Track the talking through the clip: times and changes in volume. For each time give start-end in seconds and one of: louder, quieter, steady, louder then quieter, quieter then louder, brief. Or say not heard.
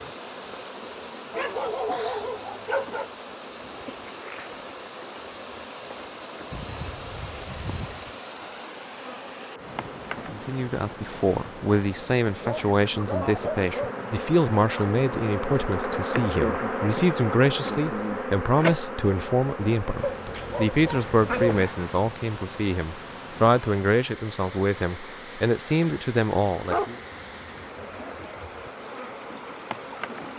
10.3-26.9 steady.